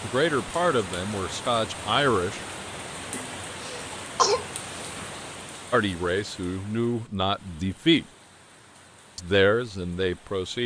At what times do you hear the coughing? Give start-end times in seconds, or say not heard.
3.1-4.5.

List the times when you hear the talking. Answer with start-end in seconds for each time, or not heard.
0.0-2.4, 5.7-8.1, 9.2-10.6.